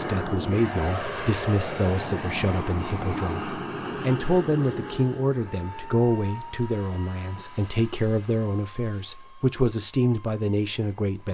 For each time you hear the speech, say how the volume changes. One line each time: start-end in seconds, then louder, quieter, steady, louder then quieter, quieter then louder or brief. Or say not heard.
0.0-11.2 steady.